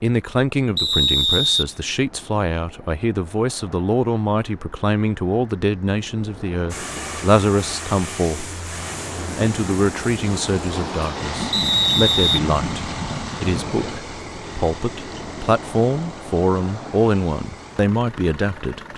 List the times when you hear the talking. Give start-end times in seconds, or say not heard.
0.0-8.5, 9.3-18.9.